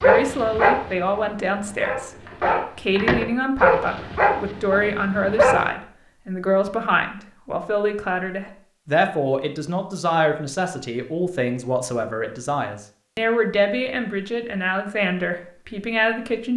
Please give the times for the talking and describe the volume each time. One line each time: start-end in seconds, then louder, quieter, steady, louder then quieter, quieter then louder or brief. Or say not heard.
0.0-16.5 steady.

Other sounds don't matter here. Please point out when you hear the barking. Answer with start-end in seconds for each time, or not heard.
0.0-5.7.